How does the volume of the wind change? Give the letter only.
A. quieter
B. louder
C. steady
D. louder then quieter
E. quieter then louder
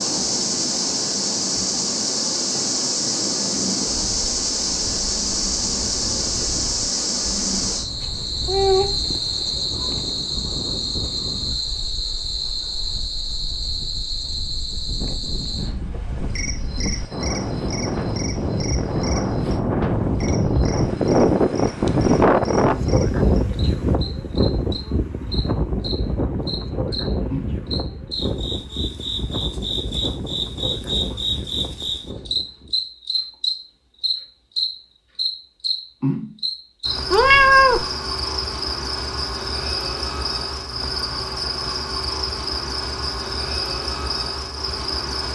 D.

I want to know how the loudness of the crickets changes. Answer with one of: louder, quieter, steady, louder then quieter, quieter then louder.
quieter then louder.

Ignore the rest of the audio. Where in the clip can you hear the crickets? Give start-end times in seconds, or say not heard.
0.0-45.3.